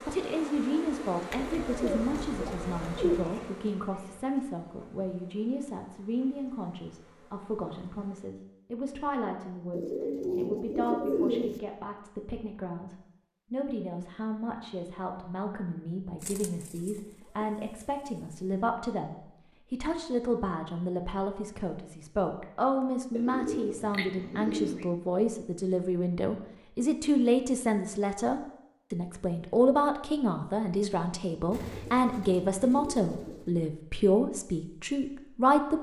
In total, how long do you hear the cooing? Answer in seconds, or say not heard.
10 s.